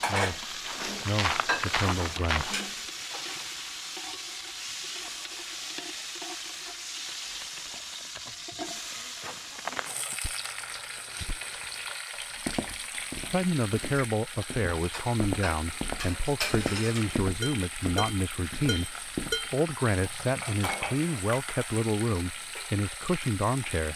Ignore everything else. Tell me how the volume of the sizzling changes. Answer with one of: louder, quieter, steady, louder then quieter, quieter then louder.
steady.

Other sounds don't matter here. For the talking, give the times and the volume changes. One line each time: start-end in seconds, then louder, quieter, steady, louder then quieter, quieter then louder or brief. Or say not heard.
0.1-2.5 brief
13.3-23.9 steady.